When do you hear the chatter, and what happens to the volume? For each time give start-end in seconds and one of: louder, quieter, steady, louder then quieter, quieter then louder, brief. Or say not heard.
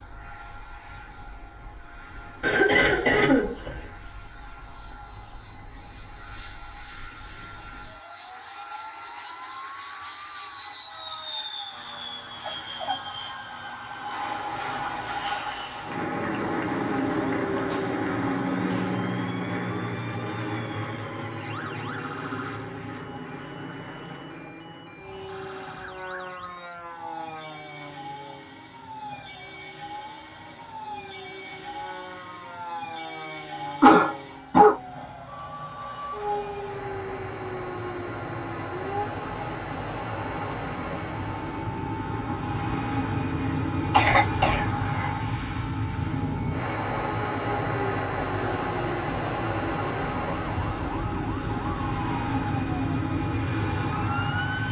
not heard.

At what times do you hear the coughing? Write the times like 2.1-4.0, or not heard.
2.4-3.9, 33.8-34.8, 43.5-45.1.